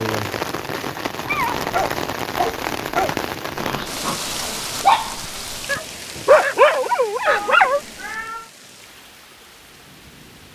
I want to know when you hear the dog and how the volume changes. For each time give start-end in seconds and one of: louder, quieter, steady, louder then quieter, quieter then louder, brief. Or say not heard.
1.6-7.8 quieter then louder.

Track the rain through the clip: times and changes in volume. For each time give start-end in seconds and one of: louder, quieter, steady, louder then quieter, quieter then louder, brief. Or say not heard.
0.0-10.5 quieter.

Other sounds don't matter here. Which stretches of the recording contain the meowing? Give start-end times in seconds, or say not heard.
1.2-1.9, 7.2-8.5.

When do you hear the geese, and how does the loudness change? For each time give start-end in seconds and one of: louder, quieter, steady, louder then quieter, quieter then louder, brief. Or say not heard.
not heard.